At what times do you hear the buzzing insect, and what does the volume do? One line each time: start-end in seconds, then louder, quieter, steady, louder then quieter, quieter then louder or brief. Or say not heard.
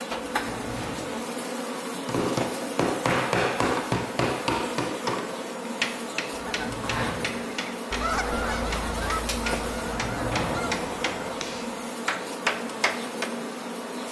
0.0-14.0 steady.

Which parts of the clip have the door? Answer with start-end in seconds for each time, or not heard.
0.3-1.1, 6.3-7.3, 9.8-10.7.